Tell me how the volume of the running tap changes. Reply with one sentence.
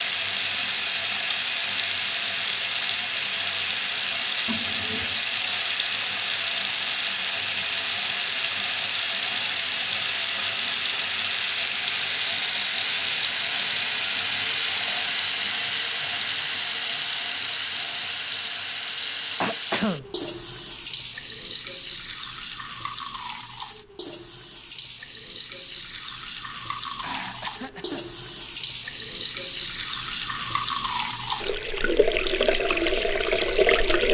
The loudness of the running tap goes down, then up.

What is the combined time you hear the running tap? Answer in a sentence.
The running tap can be heard for 34 seconds in total.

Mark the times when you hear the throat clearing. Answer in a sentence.
You can hear the throat clearing from 4.5 to 5.2 s, from 19.4 to 20.1 s and from 27.0 to 28.1 s.